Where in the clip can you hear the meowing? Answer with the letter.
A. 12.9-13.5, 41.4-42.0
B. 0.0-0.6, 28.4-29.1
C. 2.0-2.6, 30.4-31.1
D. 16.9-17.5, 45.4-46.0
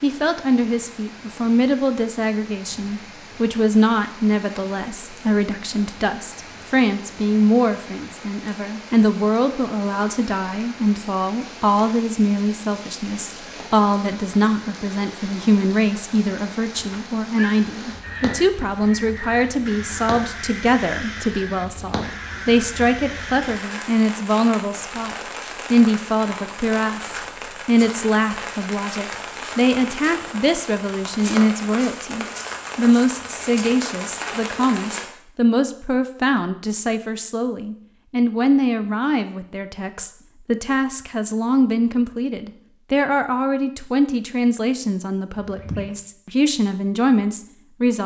D.